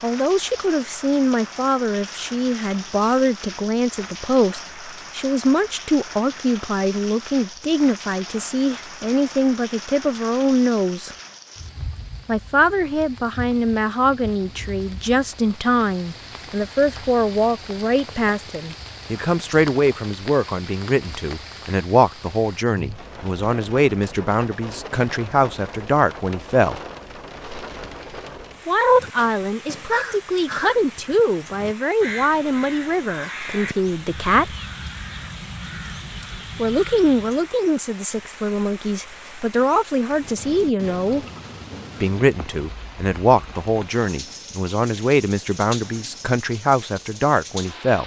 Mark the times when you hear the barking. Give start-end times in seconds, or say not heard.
not heard.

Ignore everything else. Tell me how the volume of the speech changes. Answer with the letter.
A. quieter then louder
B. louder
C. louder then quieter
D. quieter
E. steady
E.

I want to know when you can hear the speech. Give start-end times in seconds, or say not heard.
0.0-11.2, 12.2-26.8, 28.6-34.5, 36.5-41.2, 42.0-48.0.